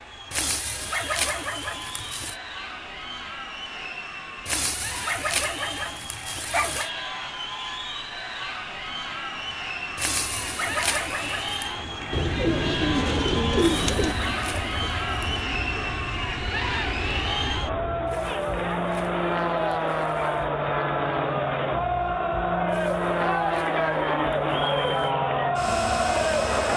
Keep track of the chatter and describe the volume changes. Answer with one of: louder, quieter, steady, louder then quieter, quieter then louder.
louder.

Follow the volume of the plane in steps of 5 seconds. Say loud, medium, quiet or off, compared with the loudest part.
quiet, quiet, medium, loud, loud, loud.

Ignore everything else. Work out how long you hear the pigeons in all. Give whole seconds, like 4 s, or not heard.
2 s.